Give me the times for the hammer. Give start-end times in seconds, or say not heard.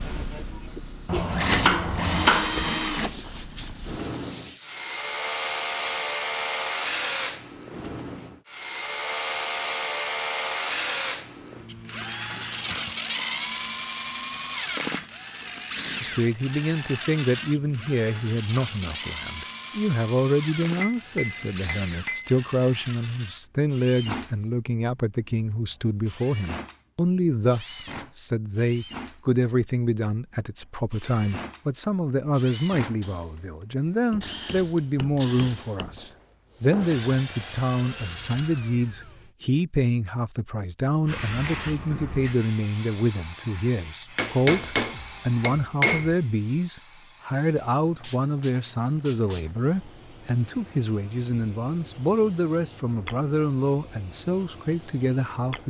1.1-2.8, 20.8-22.4, 34.1-36.0, 44.1-46.1.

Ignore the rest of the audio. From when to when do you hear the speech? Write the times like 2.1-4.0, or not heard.
16.0-55.6.